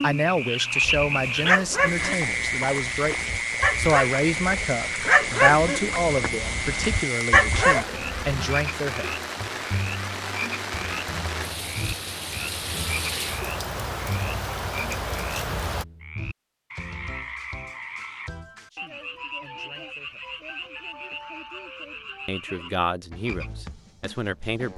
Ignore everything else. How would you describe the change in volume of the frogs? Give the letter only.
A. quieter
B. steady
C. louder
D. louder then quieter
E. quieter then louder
A.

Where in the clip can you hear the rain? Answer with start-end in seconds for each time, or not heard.
0.0-15.8.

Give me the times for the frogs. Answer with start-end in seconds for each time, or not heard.
0.0-24.7.